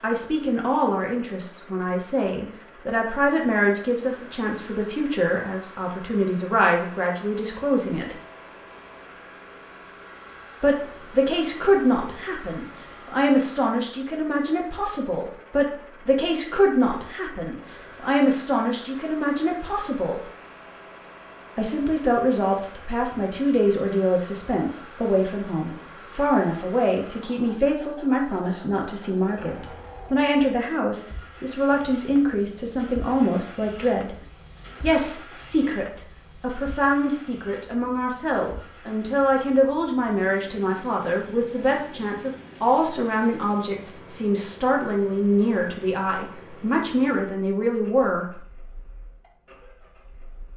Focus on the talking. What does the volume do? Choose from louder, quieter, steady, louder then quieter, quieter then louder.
steady.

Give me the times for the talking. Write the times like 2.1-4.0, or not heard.
0.0-8.2, 10.6-20.2, 21.6-34.1, 34.8-48.4.